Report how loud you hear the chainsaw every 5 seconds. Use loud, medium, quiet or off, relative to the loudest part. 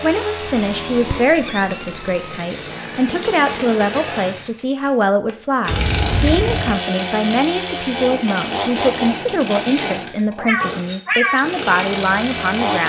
medium, loud, loud.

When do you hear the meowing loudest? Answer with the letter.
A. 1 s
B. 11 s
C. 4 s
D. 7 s
B.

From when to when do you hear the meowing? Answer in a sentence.
You can hear the meowing from 0.4 to 2.4 s, from 5.7 to 6.8 s and from 9.6 to 11.4 s.